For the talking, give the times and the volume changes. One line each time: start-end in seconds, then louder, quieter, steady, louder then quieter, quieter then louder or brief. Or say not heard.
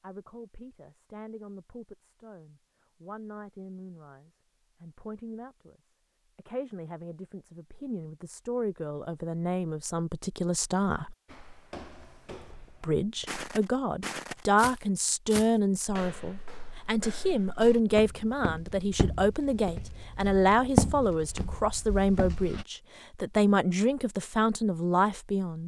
0.0-11.2 louder
12.8-25.6 steady.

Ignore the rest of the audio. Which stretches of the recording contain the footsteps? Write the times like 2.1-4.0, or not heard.
11.2-22.6.